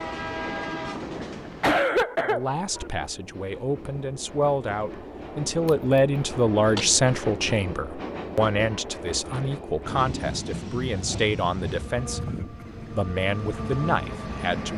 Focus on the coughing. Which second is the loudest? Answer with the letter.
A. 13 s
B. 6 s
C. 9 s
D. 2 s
D.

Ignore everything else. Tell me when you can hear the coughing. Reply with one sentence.
You can hear the coughing from 1.1 to 2.9 s and from 12.2 to 12.8 s.